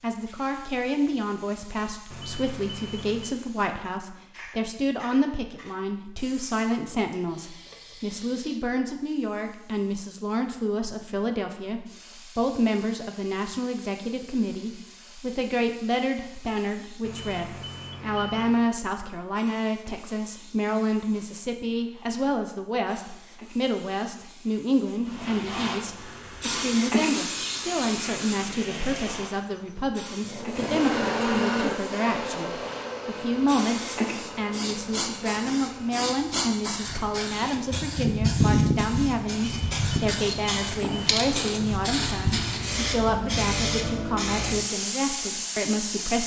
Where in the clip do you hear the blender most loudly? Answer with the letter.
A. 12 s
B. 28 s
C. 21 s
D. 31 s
D.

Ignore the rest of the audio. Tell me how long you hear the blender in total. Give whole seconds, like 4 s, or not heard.
10 s.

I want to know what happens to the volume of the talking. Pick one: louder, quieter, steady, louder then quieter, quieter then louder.
steady.